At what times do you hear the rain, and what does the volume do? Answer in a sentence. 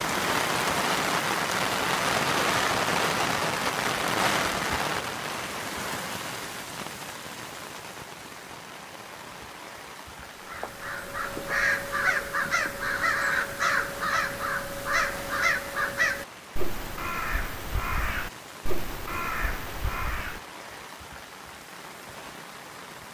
The rain can be heard from 0.0 to 23.0 s, getting quieter.